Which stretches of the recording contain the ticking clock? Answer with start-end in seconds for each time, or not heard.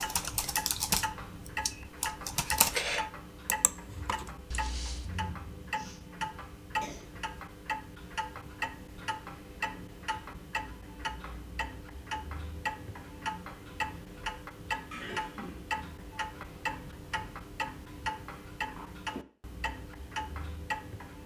0.0-21.2.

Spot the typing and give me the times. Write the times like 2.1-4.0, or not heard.
0.0-5.3.